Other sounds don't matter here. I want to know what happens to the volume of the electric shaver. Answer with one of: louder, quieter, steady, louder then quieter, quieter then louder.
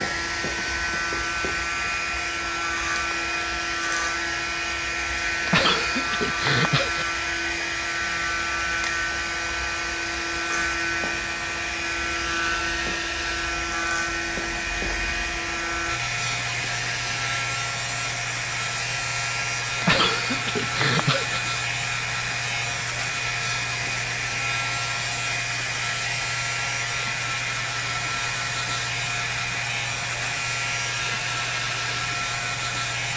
steady.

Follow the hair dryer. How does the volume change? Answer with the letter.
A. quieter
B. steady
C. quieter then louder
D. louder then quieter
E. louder
B.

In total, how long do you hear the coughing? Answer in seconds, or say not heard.
3 s.